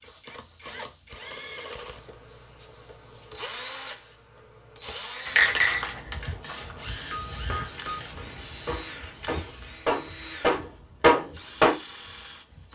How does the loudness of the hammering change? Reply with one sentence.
The volume of the hammering goes up.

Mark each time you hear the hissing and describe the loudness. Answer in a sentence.
You can hear the hissing from 0.0 to 12.7 s, getting louder then quieter.